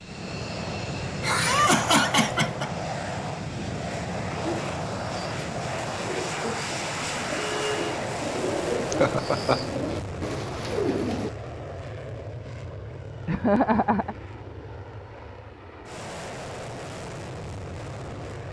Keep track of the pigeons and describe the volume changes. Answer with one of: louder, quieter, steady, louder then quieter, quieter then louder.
louder.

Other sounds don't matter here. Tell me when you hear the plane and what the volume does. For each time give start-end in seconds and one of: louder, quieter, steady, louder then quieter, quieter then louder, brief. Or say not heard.
0.0-18.4 quieter.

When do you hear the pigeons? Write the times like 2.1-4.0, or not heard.
4.4-11.3.